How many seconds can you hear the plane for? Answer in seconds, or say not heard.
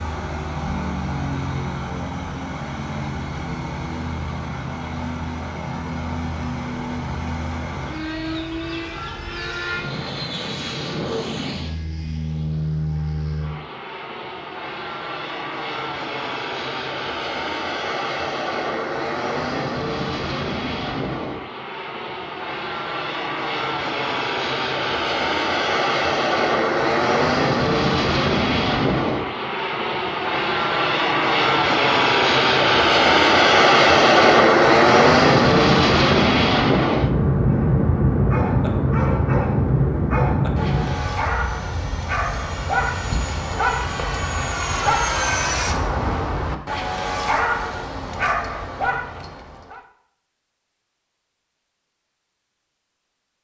46 s.